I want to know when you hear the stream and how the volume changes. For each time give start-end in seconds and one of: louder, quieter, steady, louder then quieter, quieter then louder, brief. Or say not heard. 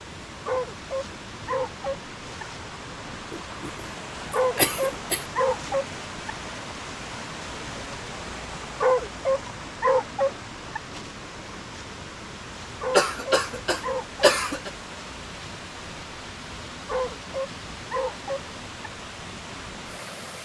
0.0-20.4 steady.